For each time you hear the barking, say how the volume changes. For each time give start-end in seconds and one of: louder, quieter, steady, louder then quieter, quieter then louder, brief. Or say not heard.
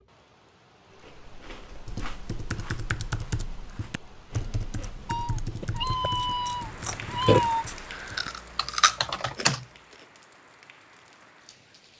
not heard.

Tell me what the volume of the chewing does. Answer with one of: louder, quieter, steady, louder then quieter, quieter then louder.
quieter then louder.